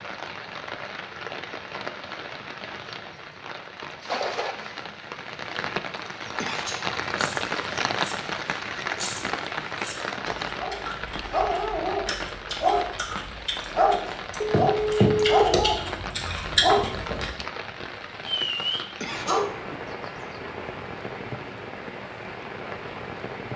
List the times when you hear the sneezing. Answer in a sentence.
You can hear the sneezing from 6.3 to 6.9 s and from 19.0 to 19.5 s.